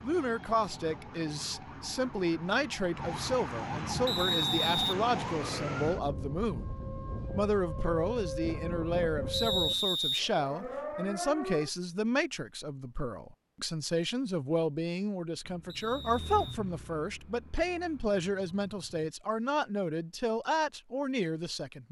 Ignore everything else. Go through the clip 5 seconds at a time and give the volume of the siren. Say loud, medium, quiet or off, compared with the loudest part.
loud, loud, loud, off, off.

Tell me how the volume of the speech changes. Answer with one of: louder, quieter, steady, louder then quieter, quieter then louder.
steady.